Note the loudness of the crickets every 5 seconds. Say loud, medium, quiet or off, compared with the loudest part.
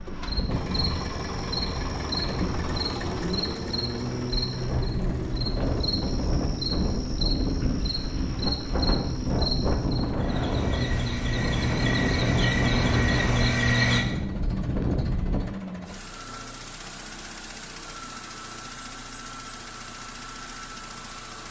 medium, medium, loud, off, off.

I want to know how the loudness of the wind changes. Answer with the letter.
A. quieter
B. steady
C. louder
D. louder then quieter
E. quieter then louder
C.